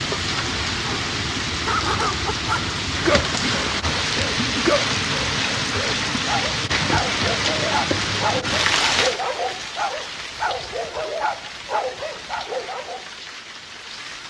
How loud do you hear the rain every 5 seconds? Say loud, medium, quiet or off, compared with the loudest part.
loud, loud, quiet.